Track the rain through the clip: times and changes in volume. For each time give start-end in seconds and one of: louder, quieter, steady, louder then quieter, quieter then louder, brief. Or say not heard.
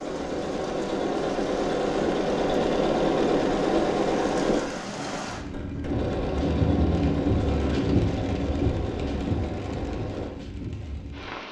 0.0-11.4 louder then quieter.